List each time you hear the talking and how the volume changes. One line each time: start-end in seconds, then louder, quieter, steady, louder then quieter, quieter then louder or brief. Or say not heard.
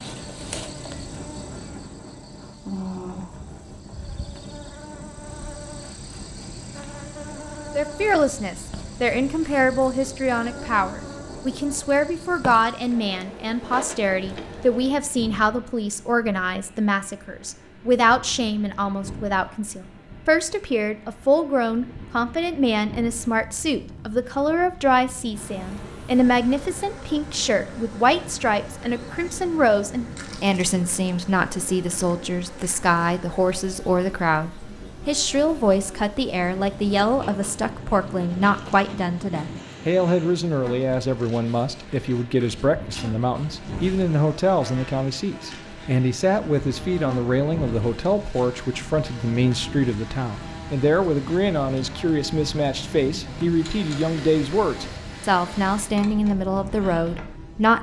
7.8-57.7 steady.